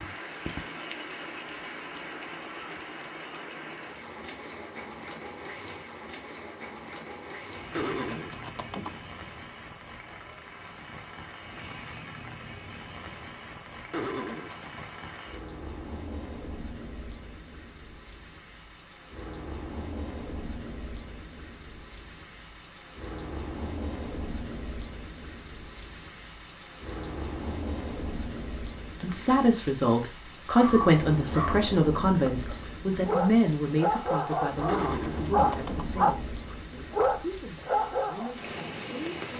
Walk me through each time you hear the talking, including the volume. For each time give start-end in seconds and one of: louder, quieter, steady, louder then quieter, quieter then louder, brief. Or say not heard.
29.0-39.3 quieter.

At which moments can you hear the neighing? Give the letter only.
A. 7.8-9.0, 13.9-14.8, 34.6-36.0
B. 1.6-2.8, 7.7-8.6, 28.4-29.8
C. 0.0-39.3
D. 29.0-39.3
A.